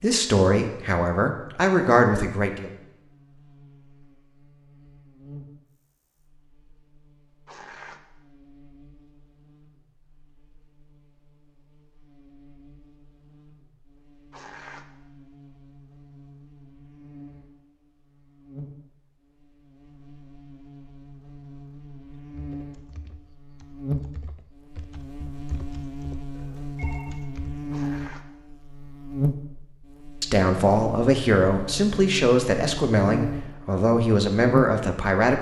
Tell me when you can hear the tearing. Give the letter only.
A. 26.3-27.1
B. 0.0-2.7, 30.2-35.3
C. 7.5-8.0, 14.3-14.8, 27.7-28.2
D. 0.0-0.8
C.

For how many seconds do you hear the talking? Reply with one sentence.
The talking can be heard for 8 seconds in total.